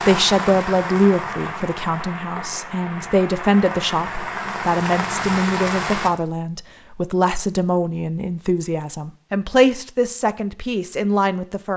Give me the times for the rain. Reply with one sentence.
You can hear the rain from 0.0 to 6.1 s.